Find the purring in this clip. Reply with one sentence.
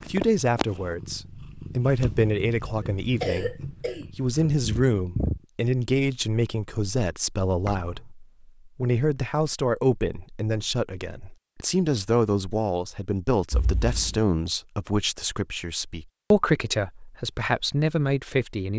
The purring can be heard from 0.0 to 5.4 s.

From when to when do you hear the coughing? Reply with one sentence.
You can hear the coughing from 2.8 to 4.5 s.